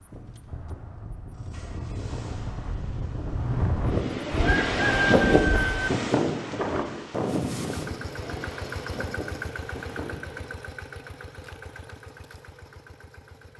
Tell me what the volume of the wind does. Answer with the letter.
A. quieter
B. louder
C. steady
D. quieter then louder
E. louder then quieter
E.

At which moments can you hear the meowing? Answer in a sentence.
You can't hear the meowing here.